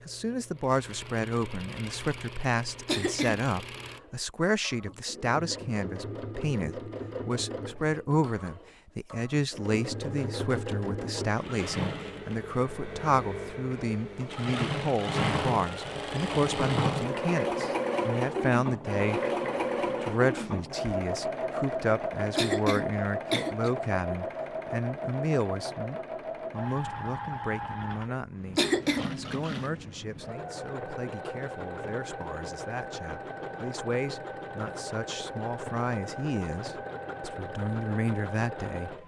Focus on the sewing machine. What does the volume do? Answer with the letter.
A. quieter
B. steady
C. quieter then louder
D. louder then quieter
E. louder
D.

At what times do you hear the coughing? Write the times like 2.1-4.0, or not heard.
2.9-3.5, 22.4-23.7, 28.6-29.1.